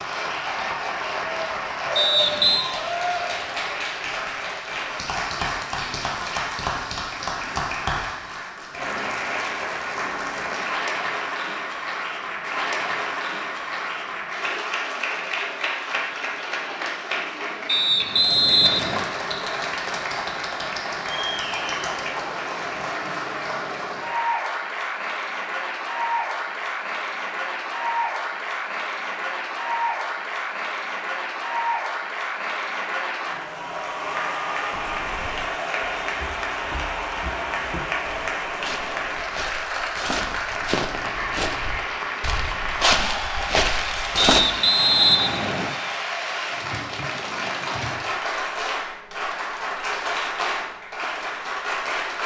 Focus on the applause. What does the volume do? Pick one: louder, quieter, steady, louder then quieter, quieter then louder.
steady.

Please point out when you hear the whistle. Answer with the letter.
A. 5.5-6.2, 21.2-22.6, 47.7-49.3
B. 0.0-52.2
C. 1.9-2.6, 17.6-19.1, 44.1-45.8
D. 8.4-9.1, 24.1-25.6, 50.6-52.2
C.